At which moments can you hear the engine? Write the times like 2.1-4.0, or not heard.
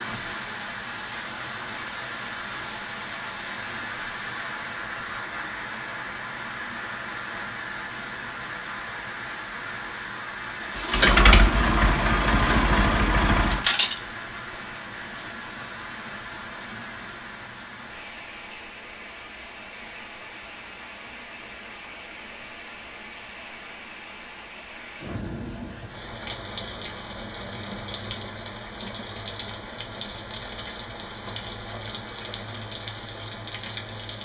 10.7-14.0.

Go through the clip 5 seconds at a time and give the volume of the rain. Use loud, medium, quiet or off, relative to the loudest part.
loud, loud, loud, medium, medium, loud, loud.